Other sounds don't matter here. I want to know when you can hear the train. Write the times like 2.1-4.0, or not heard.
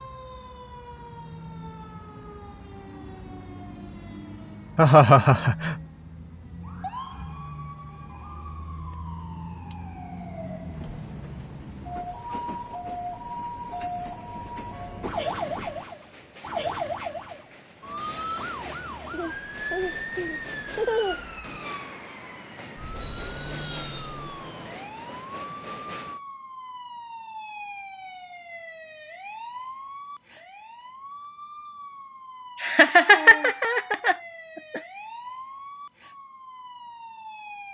10.7-26.2.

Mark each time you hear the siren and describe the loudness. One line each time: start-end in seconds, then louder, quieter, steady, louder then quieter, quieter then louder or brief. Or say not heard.
0.0-37.6 louder then quieter.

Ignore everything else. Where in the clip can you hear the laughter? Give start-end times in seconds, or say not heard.
4.8-5.8, 19.1-21.4, 32.6-34.1.